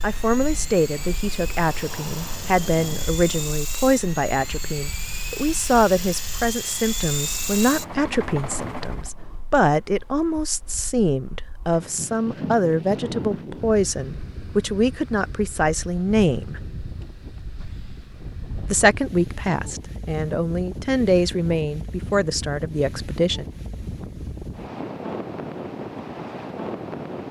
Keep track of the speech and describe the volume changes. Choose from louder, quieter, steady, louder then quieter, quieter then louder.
steady.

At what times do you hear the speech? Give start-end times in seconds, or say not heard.
0.0-16.6, 18.7-23.4.